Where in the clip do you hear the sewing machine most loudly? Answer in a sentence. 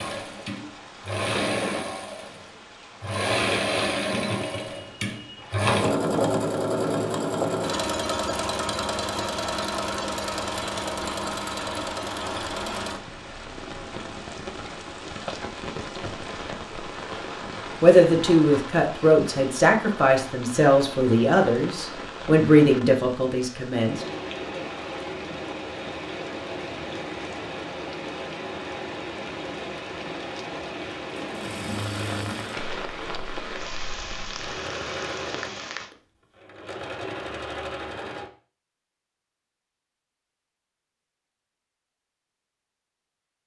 The volume of the sewing machine peaks at 6 seconds.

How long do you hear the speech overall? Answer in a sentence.
You can hear the speech for 6 seconds altogether.